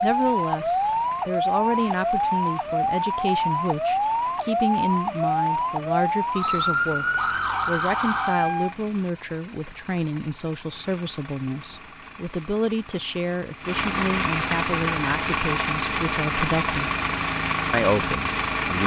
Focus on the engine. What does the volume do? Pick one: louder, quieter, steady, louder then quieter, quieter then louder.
louder.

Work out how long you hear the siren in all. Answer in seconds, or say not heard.
9 s.